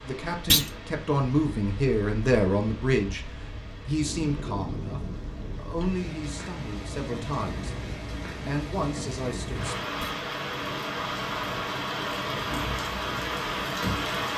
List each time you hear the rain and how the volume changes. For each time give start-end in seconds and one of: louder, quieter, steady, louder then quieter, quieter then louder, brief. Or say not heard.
0.0-14.3 louder.